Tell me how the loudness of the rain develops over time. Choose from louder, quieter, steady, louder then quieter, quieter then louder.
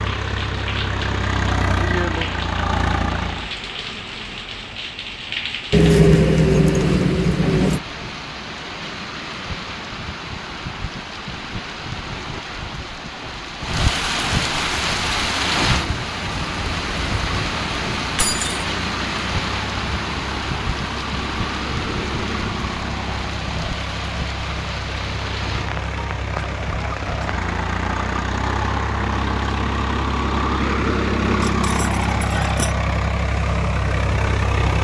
louder then quieter.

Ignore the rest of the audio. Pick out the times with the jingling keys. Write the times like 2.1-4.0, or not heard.
5.7-7.8, 18.1-18.6, 31.2-32.8.